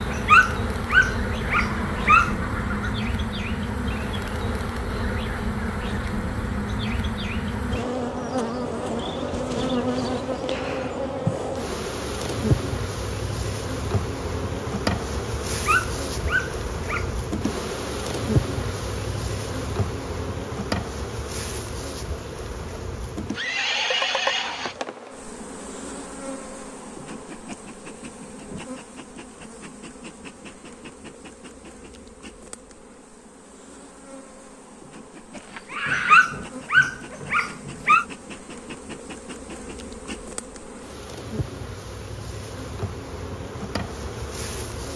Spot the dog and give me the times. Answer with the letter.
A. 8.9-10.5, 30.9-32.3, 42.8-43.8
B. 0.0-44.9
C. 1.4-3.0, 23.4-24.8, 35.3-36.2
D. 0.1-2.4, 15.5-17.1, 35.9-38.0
D.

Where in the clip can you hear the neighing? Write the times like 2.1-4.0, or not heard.
1.4-3.0, 23.4-24.8, 35.3-36.2.